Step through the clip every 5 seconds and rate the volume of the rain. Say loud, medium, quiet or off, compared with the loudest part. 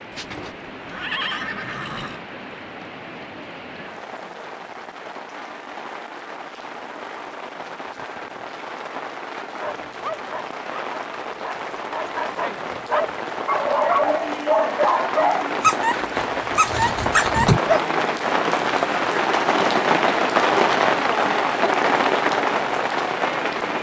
quiet, quiet, medium, loud, loud.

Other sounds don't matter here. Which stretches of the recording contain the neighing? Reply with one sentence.
The neighing can be heard from 0.1 to 2.2 s.